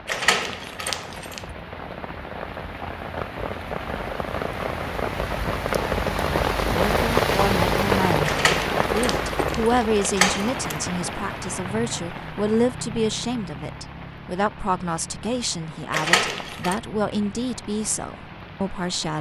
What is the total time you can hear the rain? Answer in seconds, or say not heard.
19 s.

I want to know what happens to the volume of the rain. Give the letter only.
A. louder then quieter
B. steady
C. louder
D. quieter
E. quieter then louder
A.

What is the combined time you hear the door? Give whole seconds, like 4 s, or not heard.
5 s.